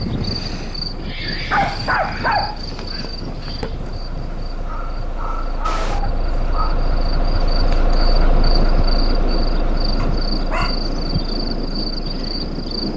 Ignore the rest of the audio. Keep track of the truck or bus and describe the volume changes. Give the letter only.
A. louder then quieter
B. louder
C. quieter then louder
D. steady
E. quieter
A.